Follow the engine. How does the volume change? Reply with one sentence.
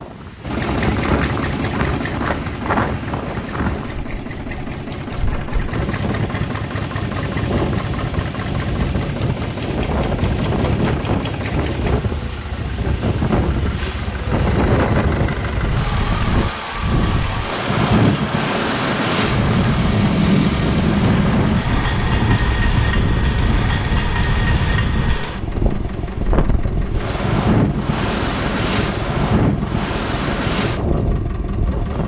The loudness of the engine stays about the same.